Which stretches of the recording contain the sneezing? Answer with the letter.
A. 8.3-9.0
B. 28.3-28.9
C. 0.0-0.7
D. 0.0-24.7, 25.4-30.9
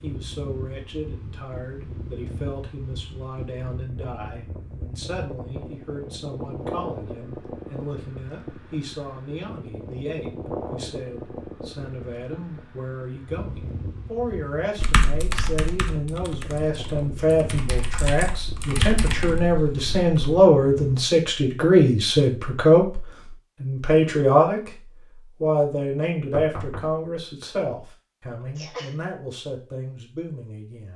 B.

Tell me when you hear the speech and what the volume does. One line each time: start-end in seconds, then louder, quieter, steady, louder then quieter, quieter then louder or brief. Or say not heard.
0.0-24.7 louder
25.4-30.9 quieter.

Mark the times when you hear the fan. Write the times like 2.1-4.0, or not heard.
0.0-21.0.